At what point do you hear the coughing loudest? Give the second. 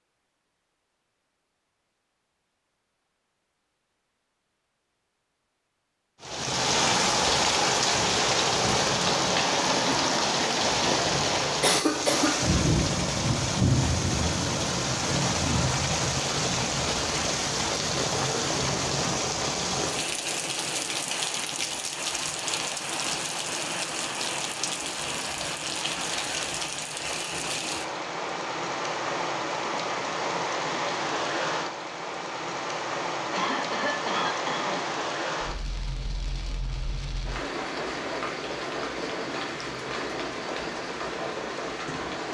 12 s.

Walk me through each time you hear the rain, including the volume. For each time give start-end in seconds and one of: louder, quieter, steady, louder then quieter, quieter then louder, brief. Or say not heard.
6.2-42.3 quieter.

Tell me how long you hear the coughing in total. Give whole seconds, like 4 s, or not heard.
2 s.